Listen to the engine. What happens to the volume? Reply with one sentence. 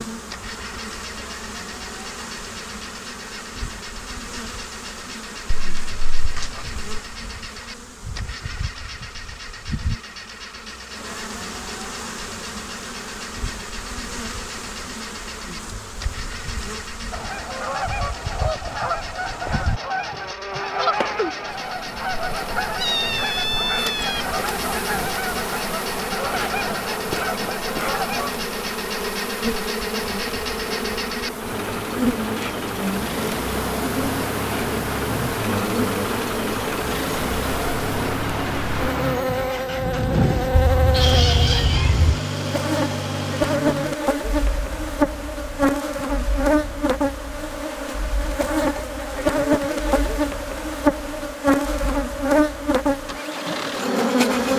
The volume of the engine goes up, then down.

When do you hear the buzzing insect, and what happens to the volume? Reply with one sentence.
The buzzing insect can be heard from 0.0 to 54.5 s, getting louder.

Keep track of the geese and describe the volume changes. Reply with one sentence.
The loudness of the geese stays about the same.